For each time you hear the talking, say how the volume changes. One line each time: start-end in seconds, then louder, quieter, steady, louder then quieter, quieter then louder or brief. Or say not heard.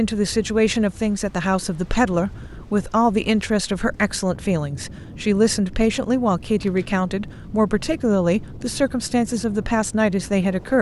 0.0-10.7 steady.